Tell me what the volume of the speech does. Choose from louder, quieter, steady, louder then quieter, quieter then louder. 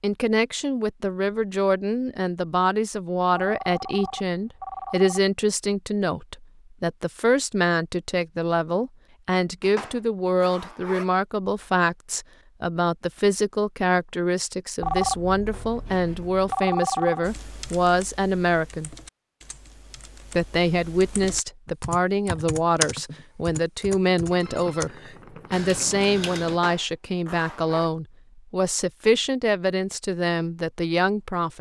steady.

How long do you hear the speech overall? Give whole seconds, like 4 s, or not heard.
30 s.